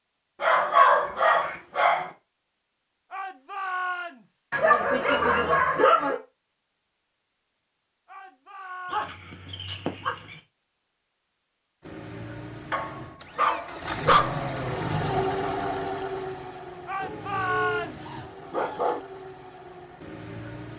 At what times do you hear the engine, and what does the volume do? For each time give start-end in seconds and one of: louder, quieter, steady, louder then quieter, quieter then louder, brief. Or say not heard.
11.8-20.7 louder then quieter.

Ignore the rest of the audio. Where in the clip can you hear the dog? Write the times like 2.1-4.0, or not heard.
0.4-2.1, 4.5-6.2, 8.9-10.3, 12.7-14.4, 17.0-19.0.